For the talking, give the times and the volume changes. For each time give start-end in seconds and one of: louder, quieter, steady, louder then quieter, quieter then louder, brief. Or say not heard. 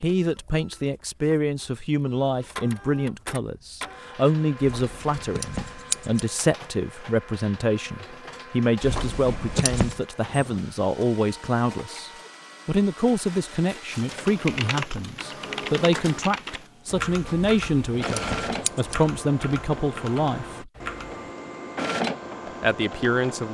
0.0-20.7 steady
22.6-23.4 brief.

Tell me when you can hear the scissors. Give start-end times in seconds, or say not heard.
4.6-6.3, 8.8-10.0, 17.3-19.0.